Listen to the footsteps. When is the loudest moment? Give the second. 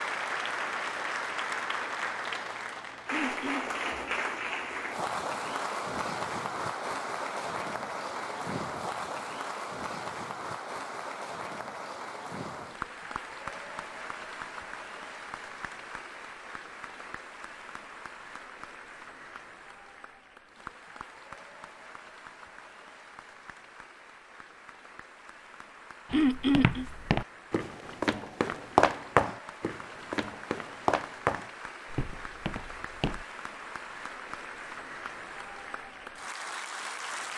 29 s.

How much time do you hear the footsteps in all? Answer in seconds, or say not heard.
7 s.